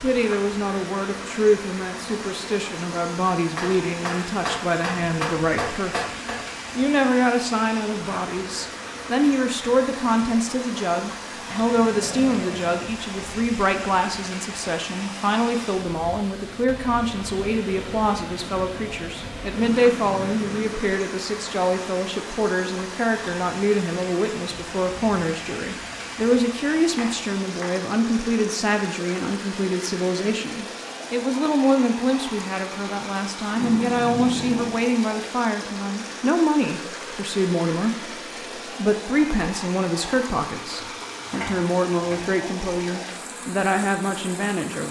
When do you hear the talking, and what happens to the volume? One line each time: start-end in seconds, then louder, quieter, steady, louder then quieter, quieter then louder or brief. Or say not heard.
0.0-44.8 steady.